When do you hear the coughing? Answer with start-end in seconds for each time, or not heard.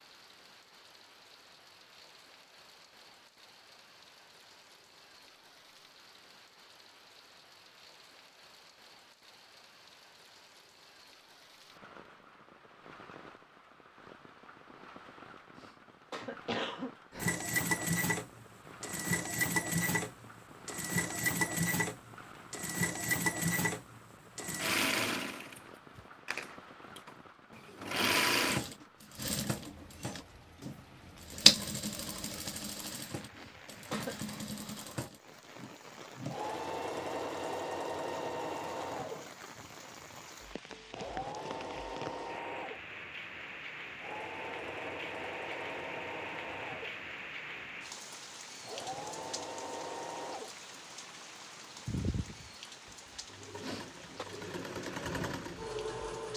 15.6-16.9, 33.4-34.1, 53.6-54.2.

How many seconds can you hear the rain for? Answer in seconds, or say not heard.
56 s.